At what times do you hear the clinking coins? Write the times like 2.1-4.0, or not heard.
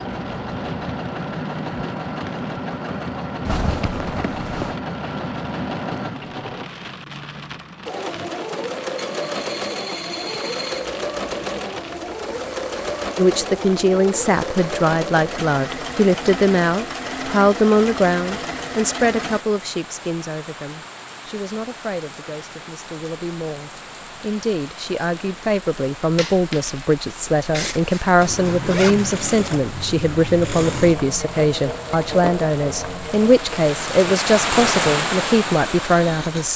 9.2-10.9, 26.1-26.9.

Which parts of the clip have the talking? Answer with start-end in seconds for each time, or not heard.
13.2-36.5.